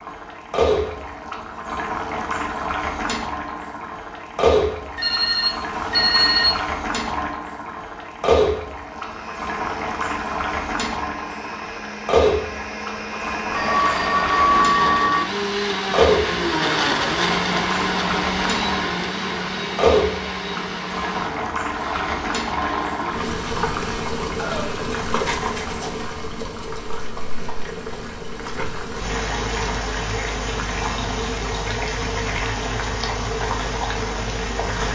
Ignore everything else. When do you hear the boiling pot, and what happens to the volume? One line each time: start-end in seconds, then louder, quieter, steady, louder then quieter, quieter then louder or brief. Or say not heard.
0.0-34.8 steady.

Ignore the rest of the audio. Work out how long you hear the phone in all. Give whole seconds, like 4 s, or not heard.
4 s.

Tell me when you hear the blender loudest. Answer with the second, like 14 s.
17 s.